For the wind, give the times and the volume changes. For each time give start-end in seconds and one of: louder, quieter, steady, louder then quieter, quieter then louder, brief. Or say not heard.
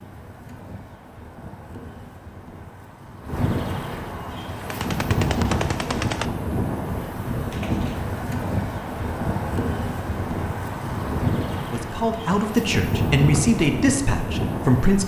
0.0-15.0 louder.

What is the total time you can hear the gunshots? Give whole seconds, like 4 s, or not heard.
2 s.